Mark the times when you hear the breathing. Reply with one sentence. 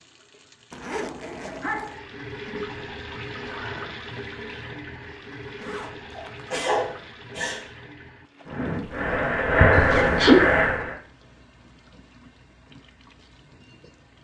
The breathing can be heard from 8.4 to 10.9 s.